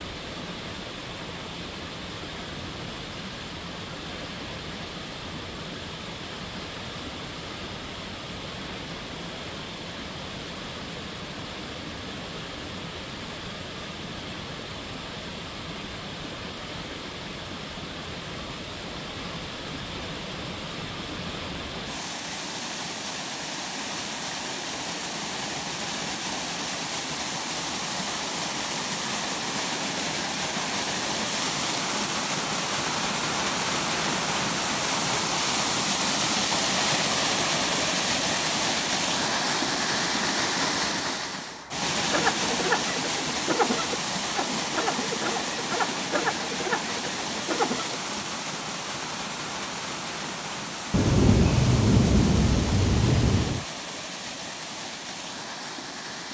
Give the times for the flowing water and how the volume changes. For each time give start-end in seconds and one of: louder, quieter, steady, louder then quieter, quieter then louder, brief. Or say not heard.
0.0-56.2 louder then quieter.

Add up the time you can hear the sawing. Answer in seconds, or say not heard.
6 s.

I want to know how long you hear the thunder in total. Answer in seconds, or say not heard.
3 s.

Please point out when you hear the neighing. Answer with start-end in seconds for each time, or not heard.
not heard.